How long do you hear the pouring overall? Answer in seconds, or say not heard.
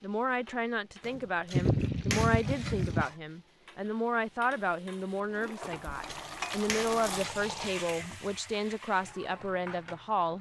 3 s.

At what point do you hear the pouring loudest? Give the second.
2 s.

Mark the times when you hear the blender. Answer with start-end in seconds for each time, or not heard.
not heard.